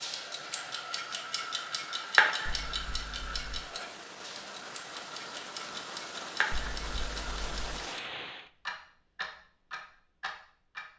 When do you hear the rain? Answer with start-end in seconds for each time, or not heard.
0.0-8.5.